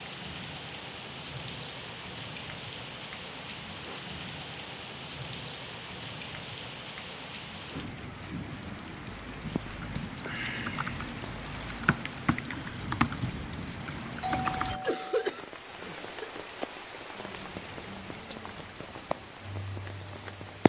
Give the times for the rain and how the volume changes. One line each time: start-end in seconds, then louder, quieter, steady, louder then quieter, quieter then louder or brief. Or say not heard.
0.0-20.6 steady.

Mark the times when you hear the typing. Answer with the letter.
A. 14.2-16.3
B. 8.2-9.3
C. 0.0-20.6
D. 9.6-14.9
D.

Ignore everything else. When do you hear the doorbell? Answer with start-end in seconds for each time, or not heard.
14.2-15.3.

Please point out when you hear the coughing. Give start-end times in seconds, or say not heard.
14.2-16.3.